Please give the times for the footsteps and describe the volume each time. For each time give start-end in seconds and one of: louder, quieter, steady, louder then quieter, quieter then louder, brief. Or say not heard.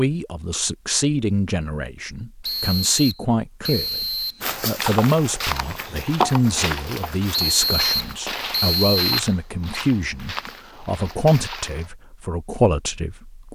4.4-11.9 quieter.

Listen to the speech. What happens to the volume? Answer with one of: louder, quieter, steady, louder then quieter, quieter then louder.
steady.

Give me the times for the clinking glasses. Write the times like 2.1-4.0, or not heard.
not heard.